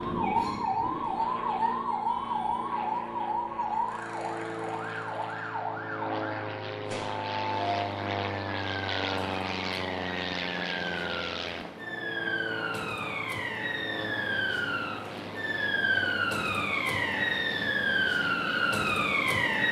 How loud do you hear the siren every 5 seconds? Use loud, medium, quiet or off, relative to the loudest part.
loud, medium, medium, loud.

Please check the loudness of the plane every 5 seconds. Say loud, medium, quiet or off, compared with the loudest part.
medium, loud, loud, medium.